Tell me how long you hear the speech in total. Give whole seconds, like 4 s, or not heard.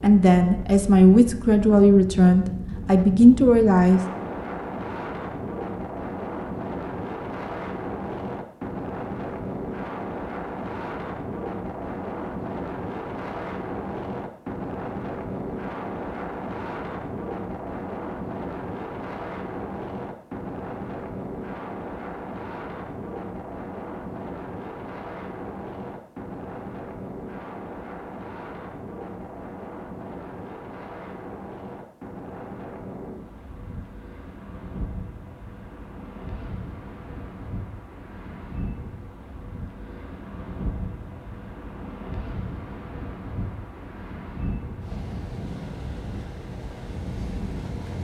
4 s.